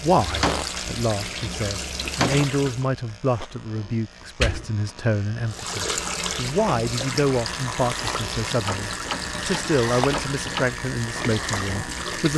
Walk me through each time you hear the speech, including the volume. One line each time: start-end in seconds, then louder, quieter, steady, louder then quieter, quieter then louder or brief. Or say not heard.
0.0-12.3 steady.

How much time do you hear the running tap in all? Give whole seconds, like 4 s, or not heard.
10 s.